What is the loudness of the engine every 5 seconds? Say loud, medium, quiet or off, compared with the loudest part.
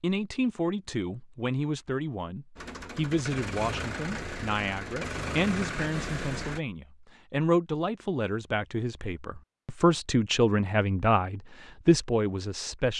loud, loud, off.